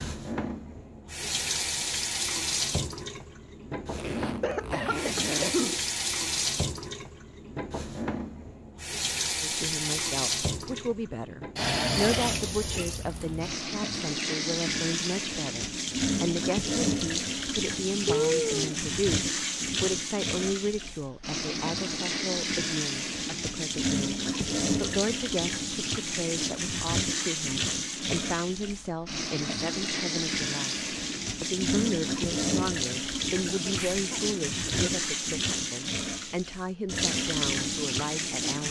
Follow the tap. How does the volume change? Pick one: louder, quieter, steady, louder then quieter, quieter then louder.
steady.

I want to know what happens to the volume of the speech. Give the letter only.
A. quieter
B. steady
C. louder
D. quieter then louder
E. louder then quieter
B.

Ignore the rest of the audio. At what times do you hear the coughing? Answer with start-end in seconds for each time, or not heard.
4.4-5.8, 18.1-18.8, 33.5-34.9.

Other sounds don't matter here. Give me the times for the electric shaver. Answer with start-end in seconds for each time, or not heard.
not heard.